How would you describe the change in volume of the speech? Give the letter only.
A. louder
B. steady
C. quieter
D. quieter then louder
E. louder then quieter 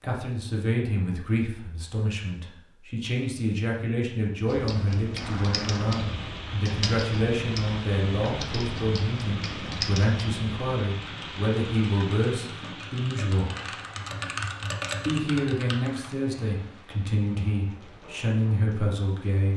B.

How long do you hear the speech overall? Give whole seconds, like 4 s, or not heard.
18 s.